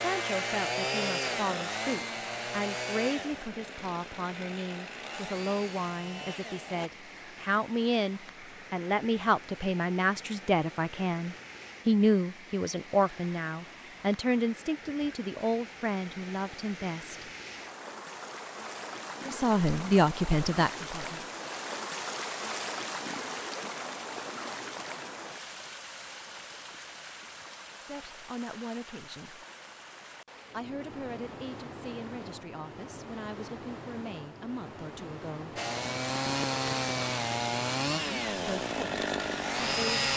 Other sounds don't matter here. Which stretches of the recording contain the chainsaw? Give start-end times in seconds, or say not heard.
0.0-6.9, 35.5-40.1.